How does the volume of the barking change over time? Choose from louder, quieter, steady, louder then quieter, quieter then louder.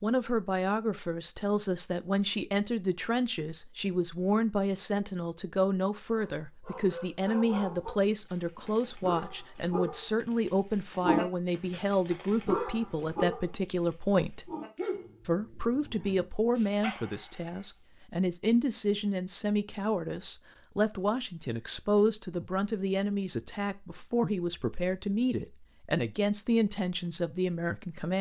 louder then quieter.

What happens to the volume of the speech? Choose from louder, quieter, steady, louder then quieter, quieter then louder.
steady.